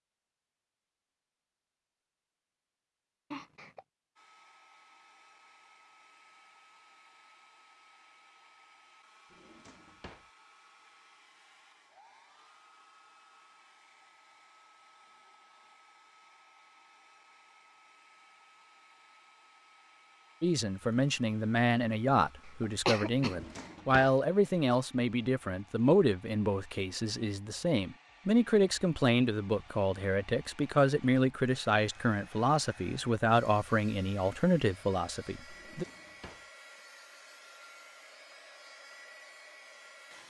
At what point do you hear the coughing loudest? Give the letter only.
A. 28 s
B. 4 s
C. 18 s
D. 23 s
D.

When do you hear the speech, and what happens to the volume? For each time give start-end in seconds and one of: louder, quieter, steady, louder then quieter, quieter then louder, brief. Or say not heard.
20.4-35.9 steady.